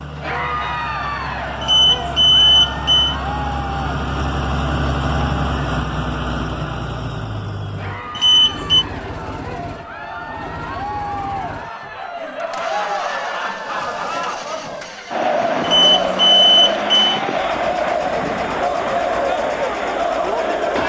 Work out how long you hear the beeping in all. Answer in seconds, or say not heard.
4 s.